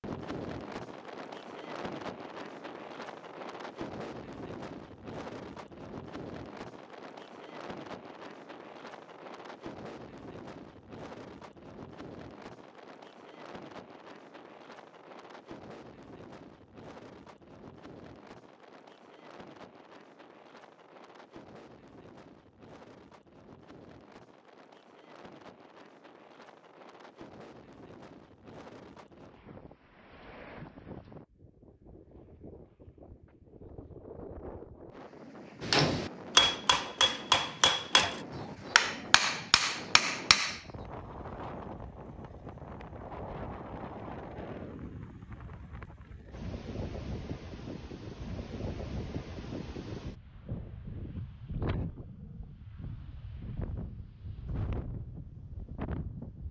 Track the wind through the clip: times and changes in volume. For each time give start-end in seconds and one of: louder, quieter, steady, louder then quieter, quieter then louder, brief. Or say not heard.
0.0-56.4 quieter then louder.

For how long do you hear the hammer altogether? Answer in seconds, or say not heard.
5 s.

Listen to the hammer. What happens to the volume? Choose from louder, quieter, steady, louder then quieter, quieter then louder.
quieter.